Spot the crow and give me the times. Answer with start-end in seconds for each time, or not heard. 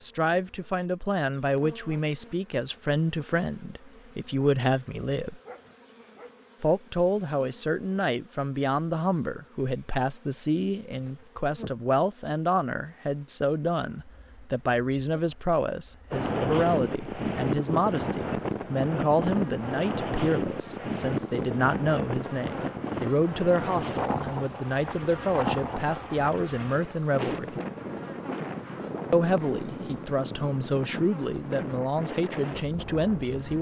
not heard.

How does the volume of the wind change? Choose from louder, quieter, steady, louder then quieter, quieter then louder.
quieter.